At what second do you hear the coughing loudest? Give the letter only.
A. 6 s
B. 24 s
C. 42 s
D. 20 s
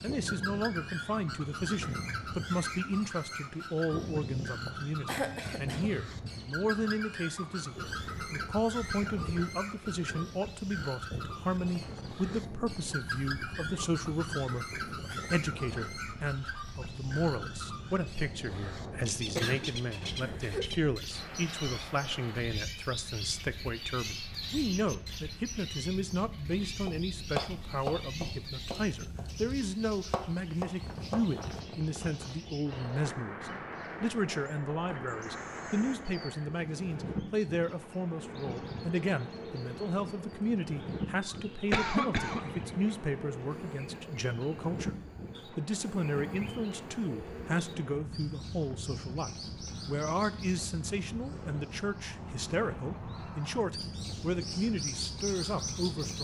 C.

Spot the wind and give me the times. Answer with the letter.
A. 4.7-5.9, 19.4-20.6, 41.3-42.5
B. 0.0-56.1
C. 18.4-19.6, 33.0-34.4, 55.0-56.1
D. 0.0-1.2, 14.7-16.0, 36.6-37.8
B.